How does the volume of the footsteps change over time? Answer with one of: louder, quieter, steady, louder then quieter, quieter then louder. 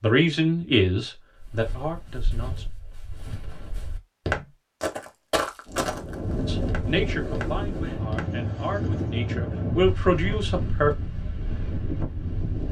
louder then quieter.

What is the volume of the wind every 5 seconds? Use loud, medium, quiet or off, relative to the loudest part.
off, loud, loud.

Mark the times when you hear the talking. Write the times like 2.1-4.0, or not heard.
0.0-2.6, 6.5-10.9.